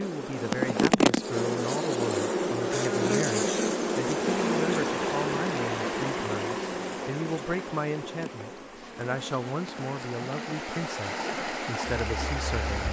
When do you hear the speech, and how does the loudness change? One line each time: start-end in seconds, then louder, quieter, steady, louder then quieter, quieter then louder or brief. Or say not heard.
0.0-12.8 steady.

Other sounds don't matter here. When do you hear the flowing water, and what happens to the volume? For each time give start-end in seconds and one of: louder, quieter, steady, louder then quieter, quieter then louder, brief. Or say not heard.
4.0-12.8 quieter then louder.